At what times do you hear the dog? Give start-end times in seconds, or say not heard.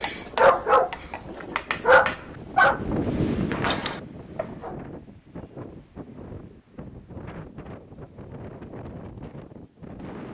0.0-4.8.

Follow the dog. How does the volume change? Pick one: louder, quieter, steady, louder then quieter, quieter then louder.
quieter then louder.